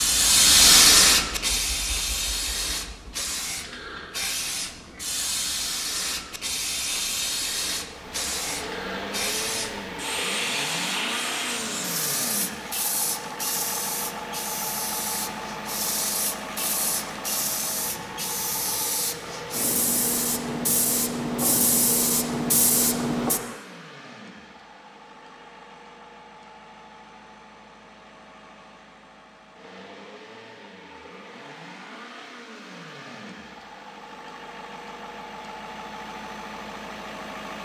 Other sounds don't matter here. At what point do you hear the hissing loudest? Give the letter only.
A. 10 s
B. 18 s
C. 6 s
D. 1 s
D.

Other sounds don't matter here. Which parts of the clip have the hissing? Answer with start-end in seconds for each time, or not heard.
0.0-23.6.